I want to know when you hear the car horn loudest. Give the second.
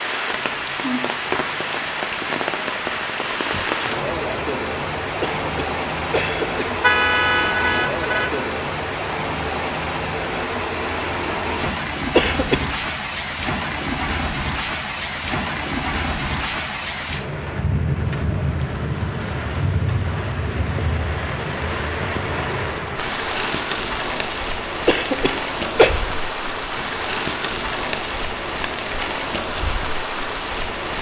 7 s.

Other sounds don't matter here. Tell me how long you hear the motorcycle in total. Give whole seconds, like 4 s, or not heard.
not heard.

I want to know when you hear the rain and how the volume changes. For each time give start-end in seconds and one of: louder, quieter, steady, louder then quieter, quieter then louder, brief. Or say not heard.
0.0-30.9 steady.